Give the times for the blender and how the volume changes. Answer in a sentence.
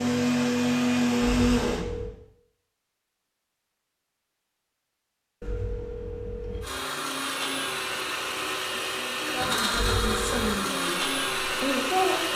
You can hear the blender briefly from 0.0 to 1.9 s; and from 6.6 to 12.3 s, at a steady volume.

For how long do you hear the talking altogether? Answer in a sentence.
The talking can be heard for 3 seconds in total.